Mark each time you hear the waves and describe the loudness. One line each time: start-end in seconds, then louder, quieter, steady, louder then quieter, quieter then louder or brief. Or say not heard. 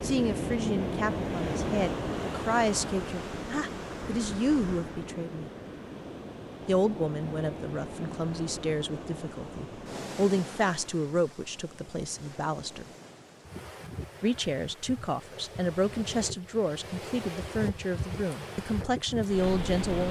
0.0-20.0 quieter then louder.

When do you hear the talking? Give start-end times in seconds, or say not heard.
0.0-5.5, 6.7-12.8, 14.2-20.0.